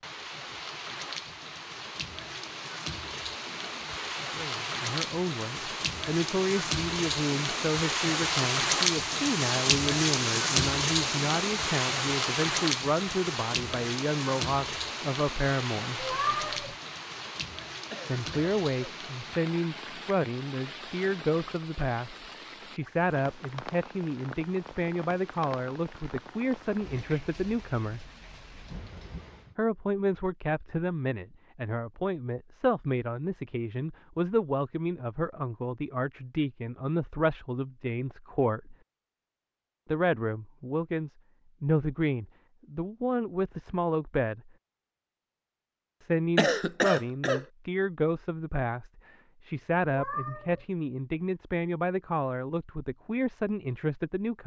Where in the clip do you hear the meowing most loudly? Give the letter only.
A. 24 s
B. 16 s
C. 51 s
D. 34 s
B.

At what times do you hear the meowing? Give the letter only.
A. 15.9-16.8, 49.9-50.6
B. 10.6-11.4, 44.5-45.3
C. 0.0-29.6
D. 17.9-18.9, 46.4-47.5
A.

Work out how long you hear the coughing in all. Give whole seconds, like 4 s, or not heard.
2 s.